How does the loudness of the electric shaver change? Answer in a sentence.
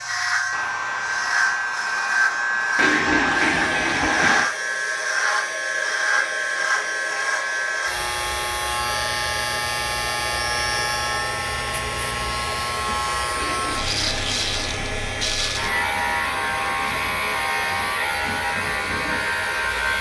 The loudness of the electric shaver stays about the same.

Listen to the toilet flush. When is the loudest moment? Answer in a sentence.
The loudest moment of the toilet flush is at 3 seconds.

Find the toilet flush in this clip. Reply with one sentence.
You can hear the toilet flush from 2.8 to 4.5 s and from 13.3 to 15.3 s.